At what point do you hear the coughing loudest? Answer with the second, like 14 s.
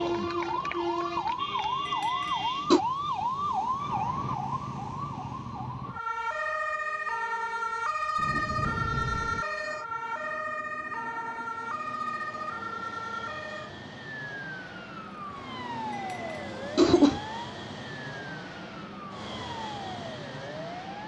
17 s.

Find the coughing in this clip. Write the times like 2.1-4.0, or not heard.
1.9-2.8, 15.9-17.2.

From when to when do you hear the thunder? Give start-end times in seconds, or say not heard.
8.2-9.4.